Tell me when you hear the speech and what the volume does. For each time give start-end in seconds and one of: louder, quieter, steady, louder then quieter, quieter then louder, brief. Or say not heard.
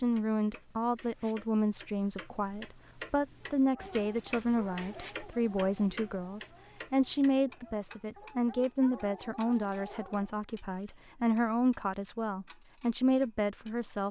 0.0-14.0 steady.